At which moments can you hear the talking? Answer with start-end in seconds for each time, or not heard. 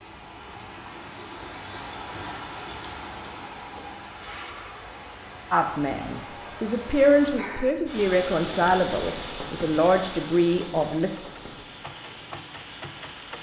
5.5-11.1.